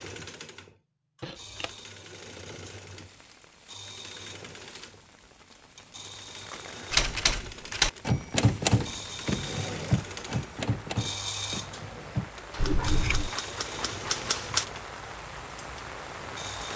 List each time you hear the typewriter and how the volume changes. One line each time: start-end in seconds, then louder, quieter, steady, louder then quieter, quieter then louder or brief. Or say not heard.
6.9-14.7 quieter.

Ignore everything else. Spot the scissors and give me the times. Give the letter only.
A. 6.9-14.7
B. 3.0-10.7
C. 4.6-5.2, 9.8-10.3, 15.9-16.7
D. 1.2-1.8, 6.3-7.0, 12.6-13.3
D.